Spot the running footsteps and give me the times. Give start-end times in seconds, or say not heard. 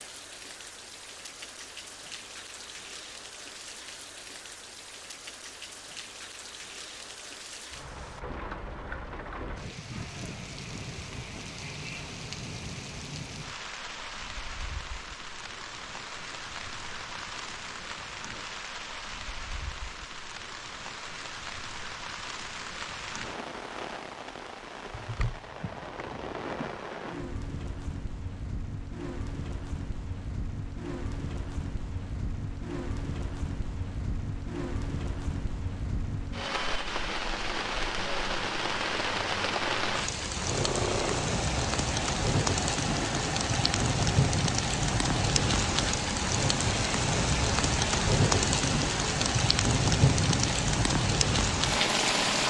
not heard.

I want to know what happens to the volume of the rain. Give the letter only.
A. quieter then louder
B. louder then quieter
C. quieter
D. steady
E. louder
E.